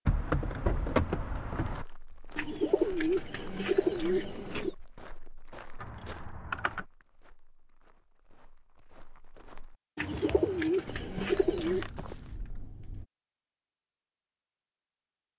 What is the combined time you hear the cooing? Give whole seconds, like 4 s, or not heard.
4 s.